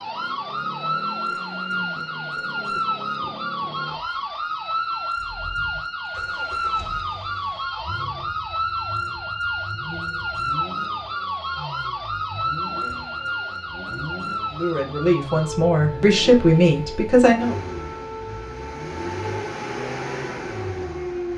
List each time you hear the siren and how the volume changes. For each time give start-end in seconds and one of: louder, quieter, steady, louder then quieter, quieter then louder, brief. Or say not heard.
0.0-21.3 quieter.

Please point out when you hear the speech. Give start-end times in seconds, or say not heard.
14.5-17.6.